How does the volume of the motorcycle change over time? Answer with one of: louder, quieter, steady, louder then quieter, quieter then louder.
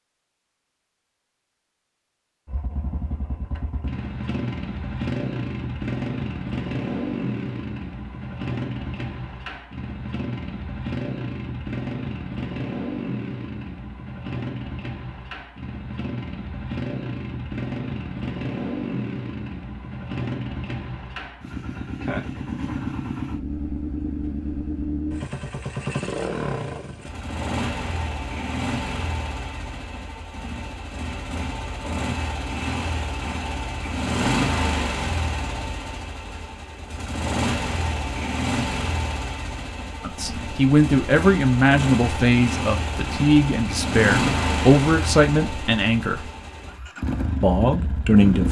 steady.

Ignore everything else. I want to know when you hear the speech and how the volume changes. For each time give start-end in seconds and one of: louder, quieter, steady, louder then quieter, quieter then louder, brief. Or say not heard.
40.0-46.2 steady
47.4-48.4 brief.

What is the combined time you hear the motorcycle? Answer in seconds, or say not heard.
46 s.